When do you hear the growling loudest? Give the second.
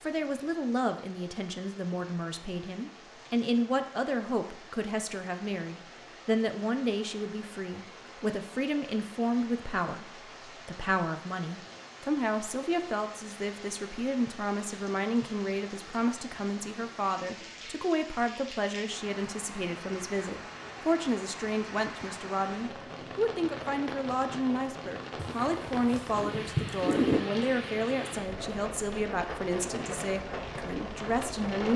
27 s.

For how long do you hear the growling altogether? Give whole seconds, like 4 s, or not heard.
2 s.